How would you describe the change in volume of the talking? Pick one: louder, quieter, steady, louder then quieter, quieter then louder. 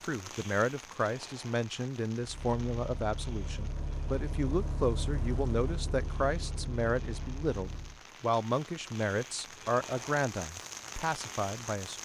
steady.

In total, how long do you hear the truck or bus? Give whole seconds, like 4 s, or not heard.
6 s.